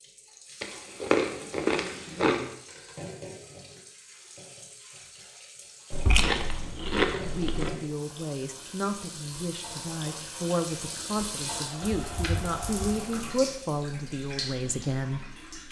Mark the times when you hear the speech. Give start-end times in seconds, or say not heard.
7.2-15.2.